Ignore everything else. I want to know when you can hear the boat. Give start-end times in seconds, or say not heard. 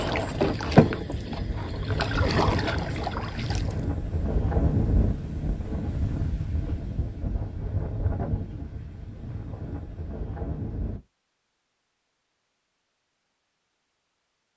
0.0-3.9.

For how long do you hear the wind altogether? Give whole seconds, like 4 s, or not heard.
11 s.